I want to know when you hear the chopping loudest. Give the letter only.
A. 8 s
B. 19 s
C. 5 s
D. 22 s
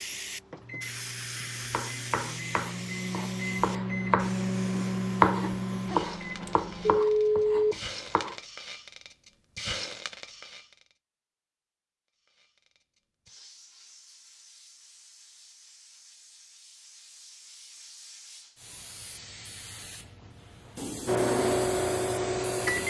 C.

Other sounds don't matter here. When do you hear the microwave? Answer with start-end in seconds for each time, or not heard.
0.0-7.0, 21.1-22.8.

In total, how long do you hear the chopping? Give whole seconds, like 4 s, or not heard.
7 s.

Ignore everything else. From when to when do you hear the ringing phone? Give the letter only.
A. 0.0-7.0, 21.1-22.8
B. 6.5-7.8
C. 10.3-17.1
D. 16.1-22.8
B.